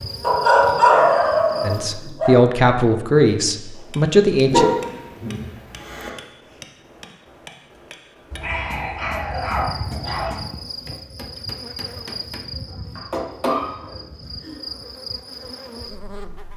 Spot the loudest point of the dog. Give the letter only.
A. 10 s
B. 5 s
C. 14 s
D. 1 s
D.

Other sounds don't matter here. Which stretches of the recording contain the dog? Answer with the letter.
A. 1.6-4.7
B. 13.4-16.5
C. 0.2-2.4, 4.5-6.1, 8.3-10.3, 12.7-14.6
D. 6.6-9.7
C.